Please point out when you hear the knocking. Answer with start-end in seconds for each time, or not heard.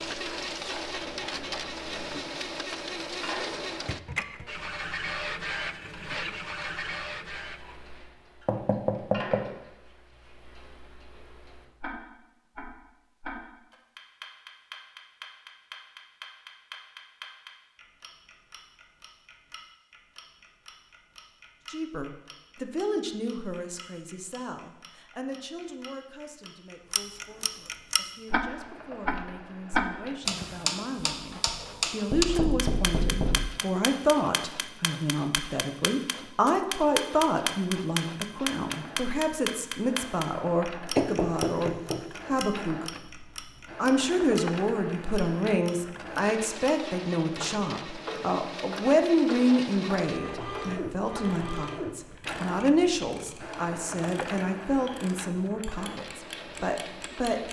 8.4-9.4, 32.1-33.6, 41.0-42.5.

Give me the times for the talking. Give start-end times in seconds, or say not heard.
21.7-57.4.